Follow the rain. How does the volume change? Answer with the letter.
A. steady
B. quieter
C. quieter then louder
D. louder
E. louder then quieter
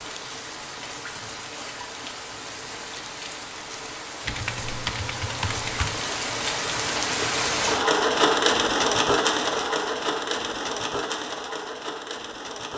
E.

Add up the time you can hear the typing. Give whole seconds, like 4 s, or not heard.
2 s.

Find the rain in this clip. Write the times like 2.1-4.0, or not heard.
0.0-12.7.